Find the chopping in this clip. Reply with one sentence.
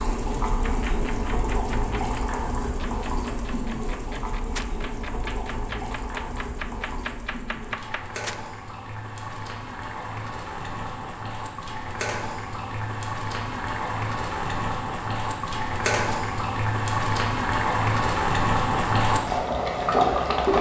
You can hear the chopping from 0.6 to 8.1 s.